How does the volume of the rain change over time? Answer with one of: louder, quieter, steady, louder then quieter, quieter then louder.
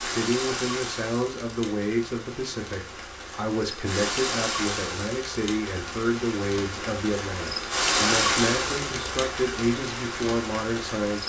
louder then quieter.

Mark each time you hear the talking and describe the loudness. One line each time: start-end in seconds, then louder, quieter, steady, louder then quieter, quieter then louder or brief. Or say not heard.
0.0-11.2 steady.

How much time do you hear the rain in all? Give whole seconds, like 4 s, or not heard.
11 s.